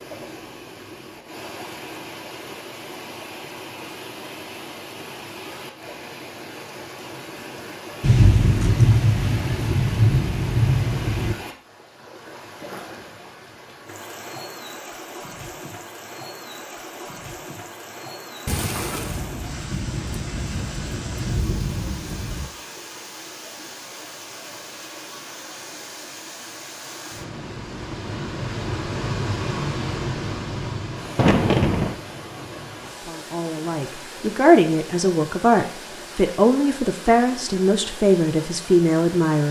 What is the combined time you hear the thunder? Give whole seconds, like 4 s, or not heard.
8 s.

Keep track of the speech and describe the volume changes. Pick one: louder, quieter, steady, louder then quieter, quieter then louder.
steady.